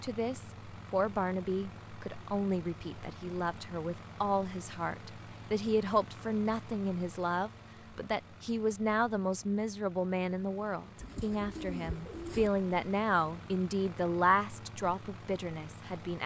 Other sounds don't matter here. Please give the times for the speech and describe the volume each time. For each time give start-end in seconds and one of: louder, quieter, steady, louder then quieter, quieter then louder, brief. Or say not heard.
0.0-16.2 steady.